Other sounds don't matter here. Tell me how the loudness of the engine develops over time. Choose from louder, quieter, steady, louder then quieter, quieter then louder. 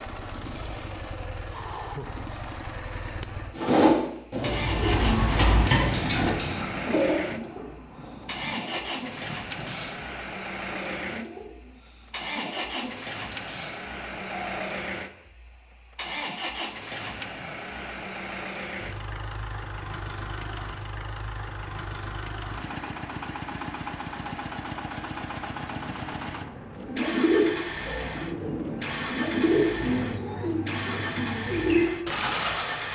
steady.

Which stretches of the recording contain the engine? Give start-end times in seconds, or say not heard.
0.0-32.9.